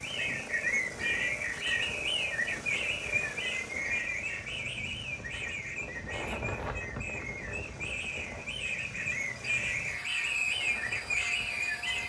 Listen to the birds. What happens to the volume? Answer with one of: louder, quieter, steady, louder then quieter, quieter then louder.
quieter then louder.